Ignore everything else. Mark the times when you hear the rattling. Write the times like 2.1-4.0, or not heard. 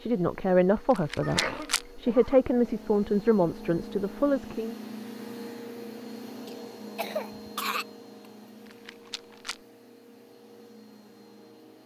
0.9-1.9, 8.7-9.6.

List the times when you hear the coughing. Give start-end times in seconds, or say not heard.
1.2-2.4, 6.5-7.8.